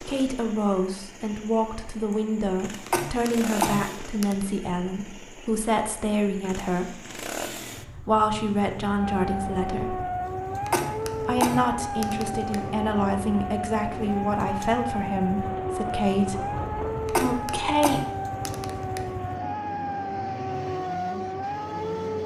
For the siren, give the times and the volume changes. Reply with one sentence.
The siren can be heard from 8.9 to 22.2 s, at a steady volume.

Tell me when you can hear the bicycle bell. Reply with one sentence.
You can't hear the bicycle bell here.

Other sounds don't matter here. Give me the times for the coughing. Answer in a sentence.
The coughing can be heard from 2.9 to 4.5 s, from 10.7 to 12.6 s and from 17.1 to 19.1 s.